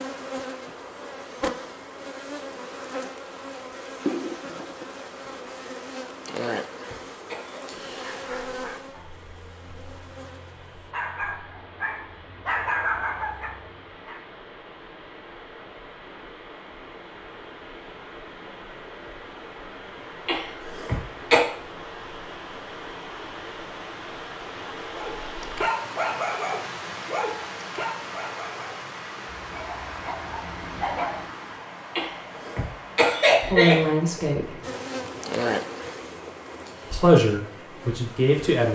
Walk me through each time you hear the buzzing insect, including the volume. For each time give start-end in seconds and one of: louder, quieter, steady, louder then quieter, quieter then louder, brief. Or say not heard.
0.0-10.9 quieter
34.6-38.7 quieter.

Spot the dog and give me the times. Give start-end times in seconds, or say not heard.
8.0-14.2, 24.9-31.3.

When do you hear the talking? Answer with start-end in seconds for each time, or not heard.
33.4-34.5, 36.9-38.7.